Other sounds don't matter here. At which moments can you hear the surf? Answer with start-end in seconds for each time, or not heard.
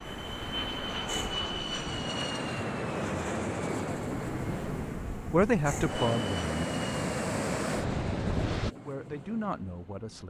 0.0-8.7.